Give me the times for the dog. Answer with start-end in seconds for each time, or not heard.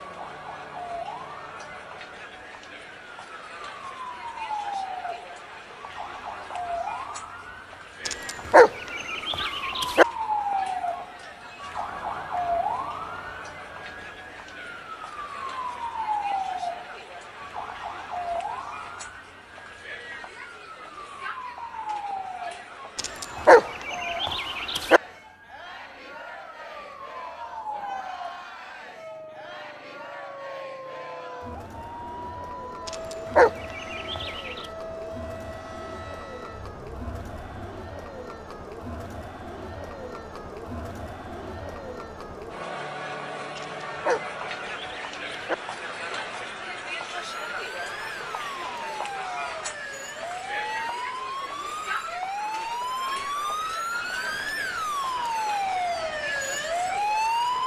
8.1-10.1, 22.9-25.0, 32.9-34.6, 43.5-45.5.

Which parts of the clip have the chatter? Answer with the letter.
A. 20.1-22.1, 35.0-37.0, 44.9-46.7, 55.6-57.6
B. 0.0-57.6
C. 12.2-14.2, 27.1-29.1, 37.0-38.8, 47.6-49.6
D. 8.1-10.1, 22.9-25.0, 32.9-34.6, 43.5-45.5
B.